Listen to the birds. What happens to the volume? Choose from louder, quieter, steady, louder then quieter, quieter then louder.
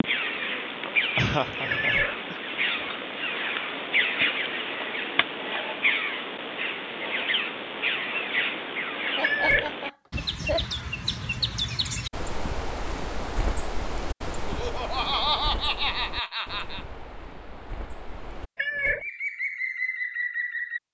quieter.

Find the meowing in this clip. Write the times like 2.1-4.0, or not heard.
1.7-2.1, 9.2-9.7, 18.6-19.1.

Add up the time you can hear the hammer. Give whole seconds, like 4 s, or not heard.
not heard.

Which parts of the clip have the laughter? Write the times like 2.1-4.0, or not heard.
1.1-2.4, 9.2-10.7, 14.4-16.9.